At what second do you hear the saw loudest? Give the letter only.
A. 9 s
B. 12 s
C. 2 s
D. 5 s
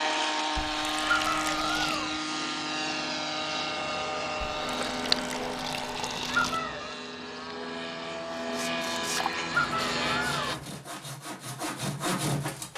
B.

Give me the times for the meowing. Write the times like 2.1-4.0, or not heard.
1.0-2.2, 6.2-7.0, 9.4-10.7.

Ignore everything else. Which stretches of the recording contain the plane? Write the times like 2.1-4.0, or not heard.
0.0-10.6.